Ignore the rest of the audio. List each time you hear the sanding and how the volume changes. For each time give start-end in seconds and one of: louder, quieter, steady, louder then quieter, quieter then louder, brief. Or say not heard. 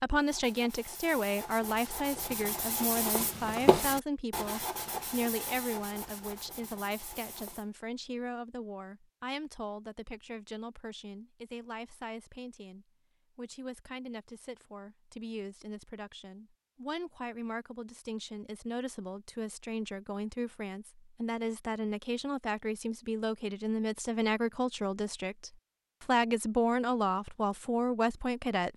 0.1-7.7 louder then quieter.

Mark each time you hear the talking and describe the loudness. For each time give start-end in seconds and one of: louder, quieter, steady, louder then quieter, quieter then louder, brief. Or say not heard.
0.0-28.7 quieter then louder.